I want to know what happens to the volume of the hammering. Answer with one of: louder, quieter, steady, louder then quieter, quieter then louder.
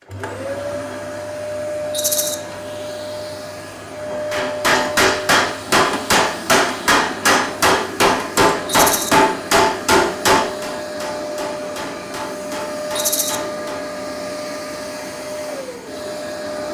quieter.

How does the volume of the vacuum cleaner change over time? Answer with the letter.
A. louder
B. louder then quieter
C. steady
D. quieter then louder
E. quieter
C.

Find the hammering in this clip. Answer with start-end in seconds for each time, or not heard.
4.3-13.8.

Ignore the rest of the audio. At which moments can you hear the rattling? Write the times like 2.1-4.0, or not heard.
1.9-2.4, 8.7-9.1, 12.9-13.4.